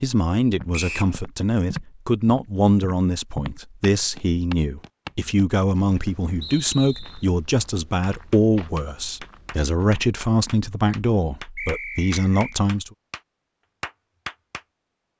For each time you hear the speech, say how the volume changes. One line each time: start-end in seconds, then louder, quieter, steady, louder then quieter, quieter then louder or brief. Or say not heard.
0.0-12.9 steady.